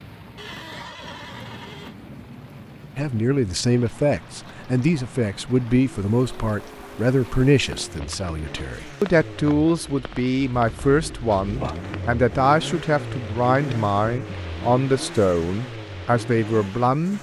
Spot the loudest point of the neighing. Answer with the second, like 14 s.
1 s.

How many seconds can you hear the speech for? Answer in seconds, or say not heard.
14 s.